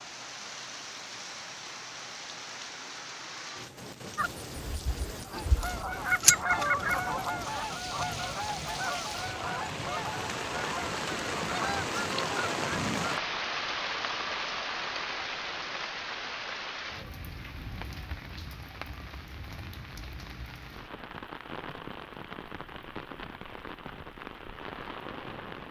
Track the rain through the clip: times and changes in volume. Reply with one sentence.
The rain can be heard from 0.0 to 25.6 s, getting louder then quieter.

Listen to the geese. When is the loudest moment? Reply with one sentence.
The volume of the geese peaks at 6 seconds.